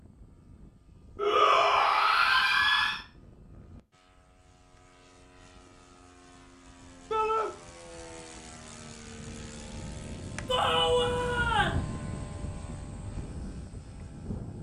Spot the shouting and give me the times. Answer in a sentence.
You can hear the shouting from 1.1 to 3.0 s, from 7.1 to 7.5 s and from 10.4 to 11.8 s.